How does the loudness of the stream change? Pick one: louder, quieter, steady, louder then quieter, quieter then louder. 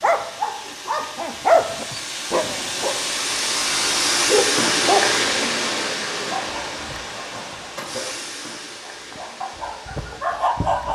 louder then quieter.